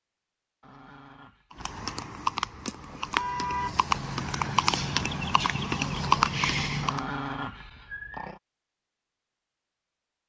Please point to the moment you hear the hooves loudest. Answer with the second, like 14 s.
6 s.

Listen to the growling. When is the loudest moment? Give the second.
7 s.